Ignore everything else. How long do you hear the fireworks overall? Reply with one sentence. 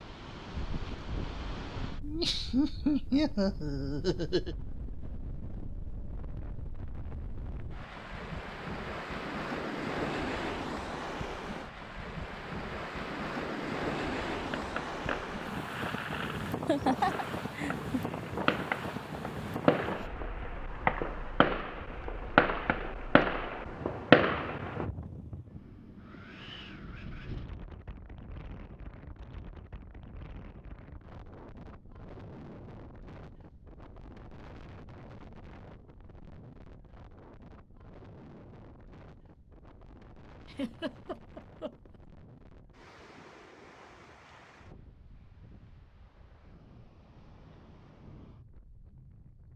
You can hear the fireworks for 10 seconds altogether.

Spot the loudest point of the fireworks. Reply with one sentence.
The volume of the fireworks peaks at 24 seconds.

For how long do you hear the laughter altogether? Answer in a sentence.
The laughter can be heard for 5 seconds in total.